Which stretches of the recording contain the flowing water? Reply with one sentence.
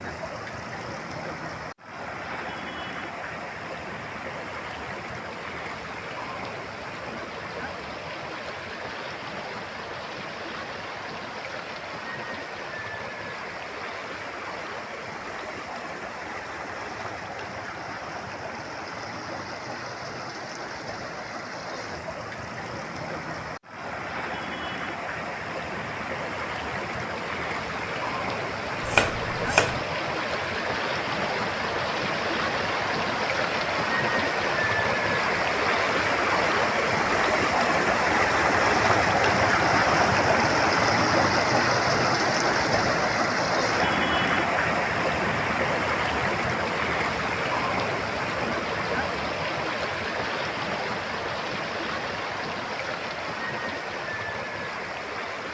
You can hear the flowing water from 0.0 to 55.4 s.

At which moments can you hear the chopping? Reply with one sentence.
The chopping can be heard from 28.8 to 29.9 s.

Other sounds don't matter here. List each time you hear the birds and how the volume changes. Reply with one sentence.
You can't hear the birds here.